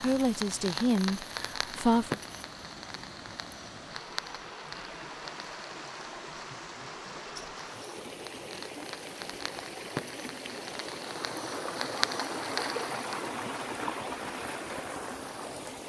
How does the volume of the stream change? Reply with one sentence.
The loudness of the stream goes up.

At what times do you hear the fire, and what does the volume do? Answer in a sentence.
You can hear the fire from 0.0 to 13.2 s, getting quieter then louder.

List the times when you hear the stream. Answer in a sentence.
The stream can be heard from 0.0 to 15.8 s.